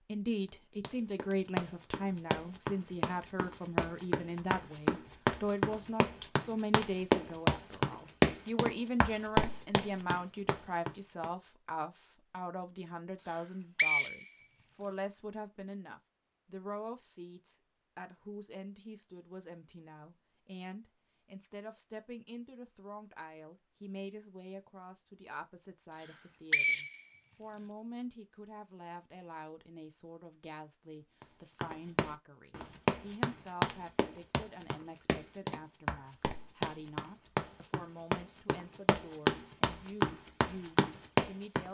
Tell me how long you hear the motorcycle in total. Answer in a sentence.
The motorcycle can't be heard in this clip.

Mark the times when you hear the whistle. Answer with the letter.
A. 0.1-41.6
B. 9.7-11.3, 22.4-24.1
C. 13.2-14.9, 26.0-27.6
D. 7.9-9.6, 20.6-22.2
C.